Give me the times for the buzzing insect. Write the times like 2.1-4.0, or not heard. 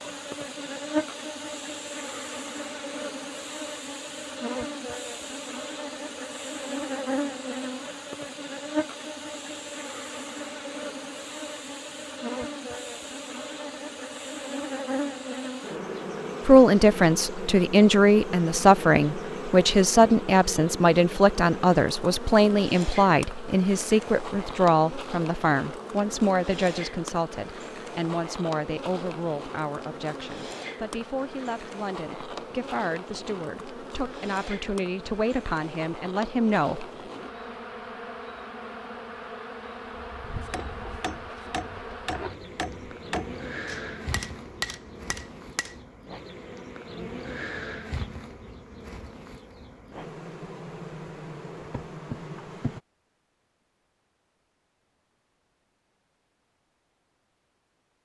0.0-52.8.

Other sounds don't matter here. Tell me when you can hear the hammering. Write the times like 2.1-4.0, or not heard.
40.2-45.8.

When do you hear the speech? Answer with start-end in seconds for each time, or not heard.
16.4-36.9.